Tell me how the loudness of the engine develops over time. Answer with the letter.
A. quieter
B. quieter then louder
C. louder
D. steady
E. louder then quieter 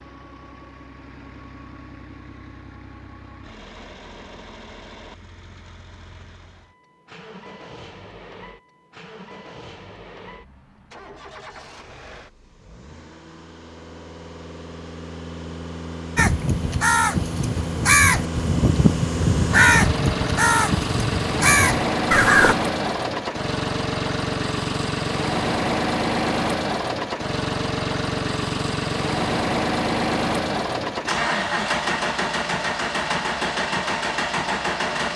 C.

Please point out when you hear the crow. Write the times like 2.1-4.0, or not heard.
16.1-22.6.